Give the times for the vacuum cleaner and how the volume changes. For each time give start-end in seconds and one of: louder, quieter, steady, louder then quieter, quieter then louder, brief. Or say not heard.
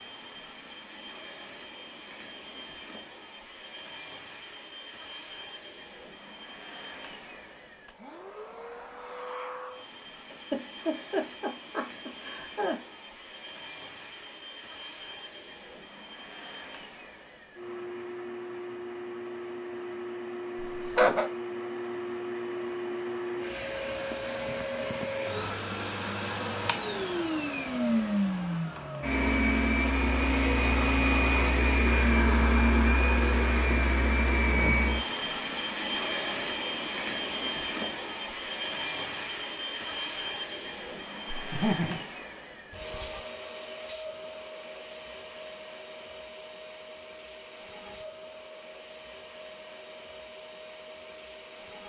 0.0-51.8 louder then quieter.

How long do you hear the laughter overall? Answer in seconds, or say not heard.
4 s.